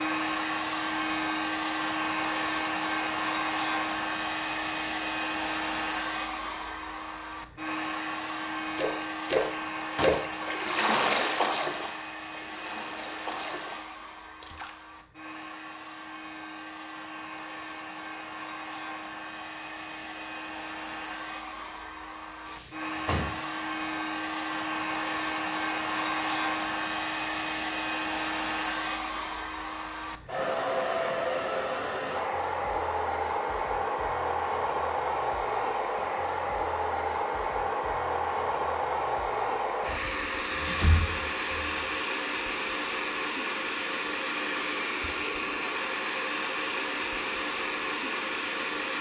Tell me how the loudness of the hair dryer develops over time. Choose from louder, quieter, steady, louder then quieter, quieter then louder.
quieter then louder.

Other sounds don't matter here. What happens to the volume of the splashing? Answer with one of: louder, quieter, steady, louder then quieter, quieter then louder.
quieter.